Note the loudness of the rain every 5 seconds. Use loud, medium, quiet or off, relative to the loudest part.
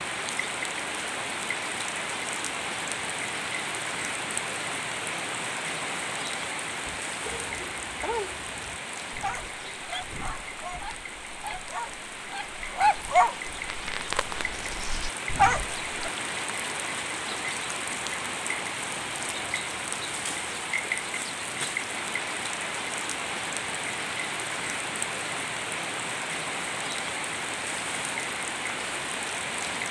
loud, loud, medium, loud, loud, loud.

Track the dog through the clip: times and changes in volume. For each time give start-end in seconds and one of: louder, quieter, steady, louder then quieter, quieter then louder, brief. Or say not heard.
6.8-16.1 louder.